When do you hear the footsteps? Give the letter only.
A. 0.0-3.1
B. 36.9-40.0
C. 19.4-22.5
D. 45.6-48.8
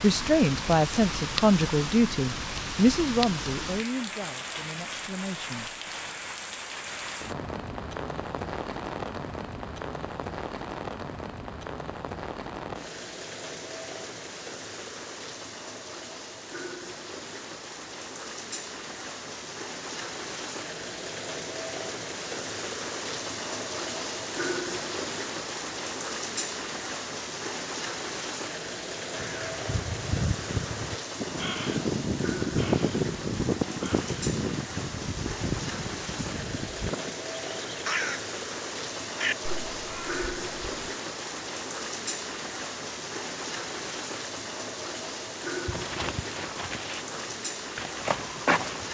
D.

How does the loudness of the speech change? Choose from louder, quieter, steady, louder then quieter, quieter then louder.
quieter.